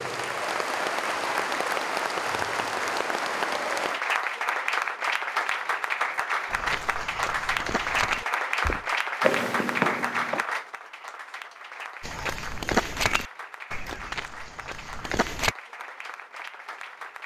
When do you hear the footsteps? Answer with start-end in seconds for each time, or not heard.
6.5-10.4, 12.0-15.6.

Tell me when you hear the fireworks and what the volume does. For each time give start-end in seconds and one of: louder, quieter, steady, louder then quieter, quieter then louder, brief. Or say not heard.
not heard.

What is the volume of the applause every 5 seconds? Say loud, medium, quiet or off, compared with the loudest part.
loud, loud, medium, quiet.